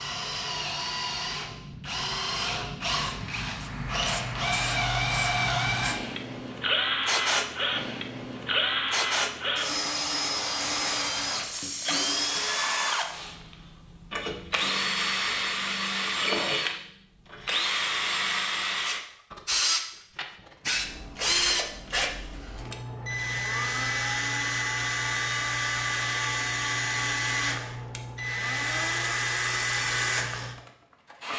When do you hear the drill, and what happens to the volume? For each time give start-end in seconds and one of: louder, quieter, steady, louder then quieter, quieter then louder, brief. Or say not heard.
0.0-31.3 steady.